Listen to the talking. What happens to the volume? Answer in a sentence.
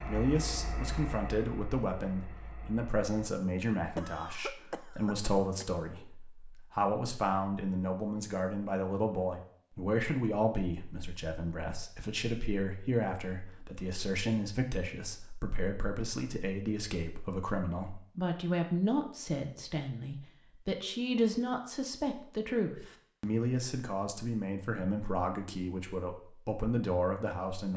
The loudness of the talking stays about the same.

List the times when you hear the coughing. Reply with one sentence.
You can hear the coughing from 4.0 to 5.7 s.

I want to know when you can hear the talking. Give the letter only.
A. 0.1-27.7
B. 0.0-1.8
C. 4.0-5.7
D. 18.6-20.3
A.